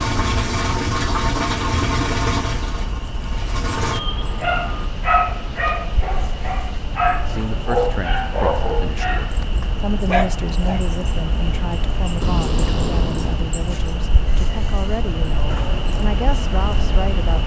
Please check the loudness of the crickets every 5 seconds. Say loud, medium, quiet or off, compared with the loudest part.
medium, medium, loud, loud.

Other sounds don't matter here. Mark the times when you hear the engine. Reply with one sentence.
The engine can be heard from 0.0 to 4.9 s.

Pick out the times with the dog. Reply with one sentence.
You can hear the dog from 4.4 to 10.8 s.